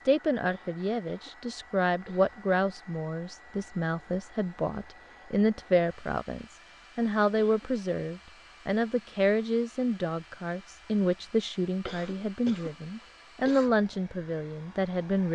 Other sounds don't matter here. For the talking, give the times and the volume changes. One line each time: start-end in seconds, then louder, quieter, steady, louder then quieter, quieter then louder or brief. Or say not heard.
0.1-15.2 steady.